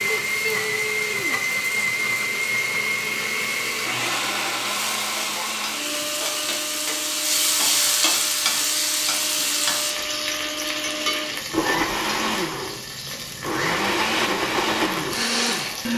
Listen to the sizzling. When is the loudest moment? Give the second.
8 s.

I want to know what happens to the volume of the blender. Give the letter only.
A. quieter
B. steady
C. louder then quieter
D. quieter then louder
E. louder
D.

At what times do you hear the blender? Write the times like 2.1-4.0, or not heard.
0.0-15.9.